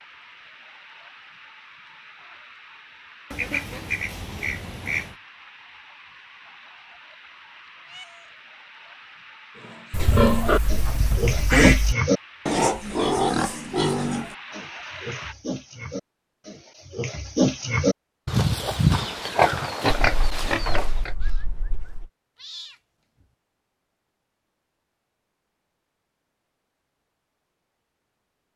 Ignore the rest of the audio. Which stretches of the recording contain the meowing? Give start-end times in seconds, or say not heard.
7.8-8.3, 22.4-23.2.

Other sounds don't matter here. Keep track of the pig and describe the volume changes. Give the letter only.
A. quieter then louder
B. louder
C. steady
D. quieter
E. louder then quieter
A.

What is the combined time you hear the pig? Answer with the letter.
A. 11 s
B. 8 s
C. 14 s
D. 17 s
A.